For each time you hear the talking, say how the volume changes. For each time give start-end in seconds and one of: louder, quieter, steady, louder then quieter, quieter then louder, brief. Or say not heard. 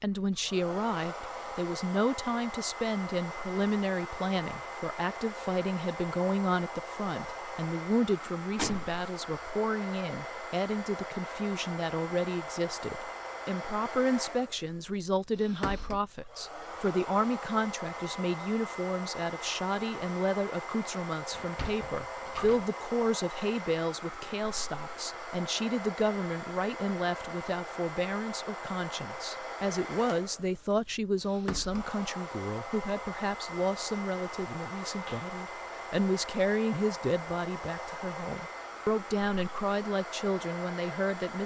0.0-41.4 steady.